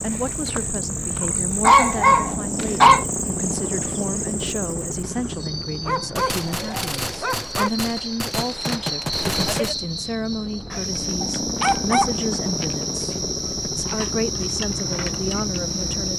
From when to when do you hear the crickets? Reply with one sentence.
You can hear the crickets from 0.0 to 16.1 s.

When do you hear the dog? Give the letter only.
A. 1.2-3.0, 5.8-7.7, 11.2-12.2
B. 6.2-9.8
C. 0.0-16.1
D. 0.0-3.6
A.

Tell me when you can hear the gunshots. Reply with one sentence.
You can hear the gunshots from 6.2 to 9.8 s.